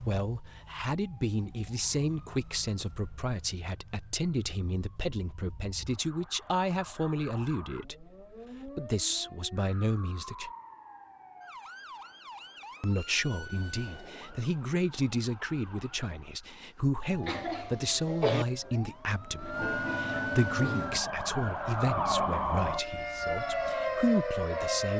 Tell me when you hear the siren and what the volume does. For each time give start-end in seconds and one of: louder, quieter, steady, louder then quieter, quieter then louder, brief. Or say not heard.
0.0-24.9 louder.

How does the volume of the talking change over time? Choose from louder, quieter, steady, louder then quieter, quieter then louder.
steady.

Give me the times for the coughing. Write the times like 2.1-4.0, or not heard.
17.2-18.4.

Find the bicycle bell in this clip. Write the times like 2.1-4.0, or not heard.
not heard.